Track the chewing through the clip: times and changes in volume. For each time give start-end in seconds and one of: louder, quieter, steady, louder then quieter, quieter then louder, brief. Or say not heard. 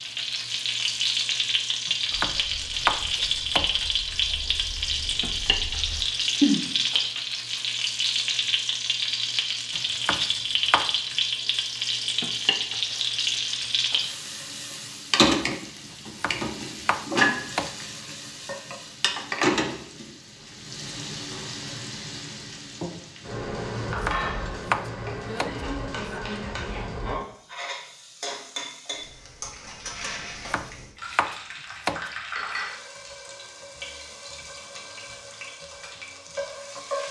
2.1-7.6 louder.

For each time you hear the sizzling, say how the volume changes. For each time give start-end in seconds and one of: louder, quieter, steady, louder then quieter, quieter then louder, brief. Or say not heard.
0.0-37.0 quieter.